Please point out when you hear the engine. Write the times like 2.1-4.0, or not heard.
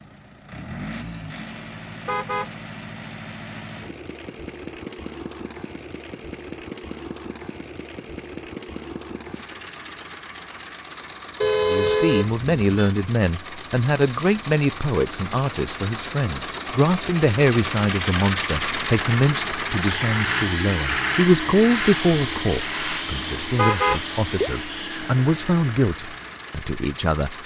0.0-27.4.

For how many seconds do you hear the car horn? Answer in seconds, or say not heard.
3 s.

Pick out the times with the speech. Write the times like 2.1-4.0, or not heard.
11.6-27.4.